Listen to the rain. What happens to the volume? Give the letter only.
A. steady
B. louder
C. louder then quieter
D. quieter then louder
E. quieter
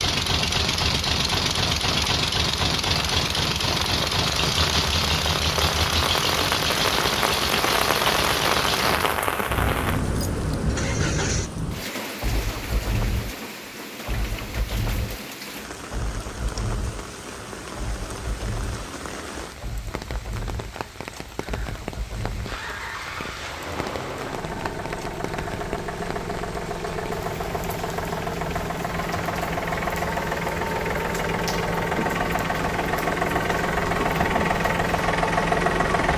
E.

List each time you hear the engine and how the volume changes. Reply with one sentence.
The engine can be heard from 0.0 to 36.1 s, getting quieter then louder.